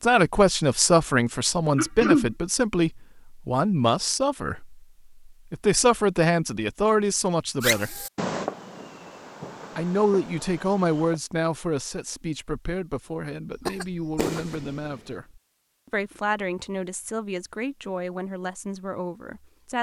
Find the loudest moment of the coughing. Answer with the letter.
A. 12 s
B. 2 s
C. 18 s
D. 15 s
B.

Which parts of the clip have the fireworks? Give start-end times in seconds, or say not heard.
7.6-11.2, 13.7-15.0.